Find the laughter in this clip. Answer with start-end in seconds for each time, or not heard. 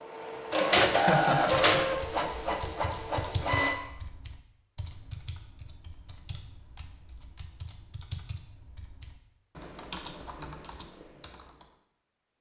0.9-1.9.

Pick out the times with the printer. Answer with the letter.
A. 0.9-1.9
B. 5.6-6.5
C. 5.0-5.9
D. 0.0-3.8
D.